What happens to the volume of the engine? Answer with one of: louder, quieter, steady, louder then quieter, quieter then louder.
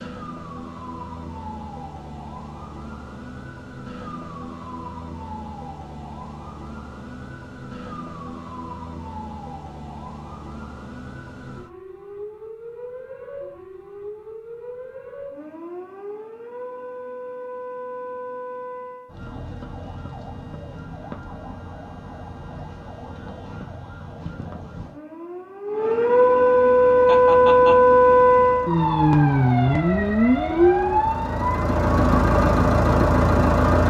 louder.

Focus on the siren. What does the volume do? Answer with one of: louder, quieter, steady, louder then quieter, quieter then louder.
louder.